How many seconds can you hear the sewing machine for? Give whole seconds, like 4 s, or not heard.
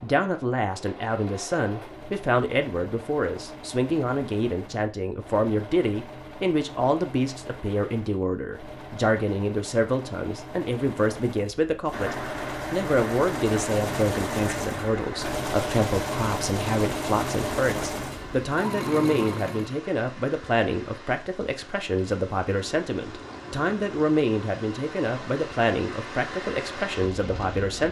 20 s.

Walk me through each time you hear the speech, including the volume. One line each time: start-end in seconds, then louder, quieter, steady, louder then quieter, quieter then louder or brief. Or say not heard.
0.0-27.8 steady.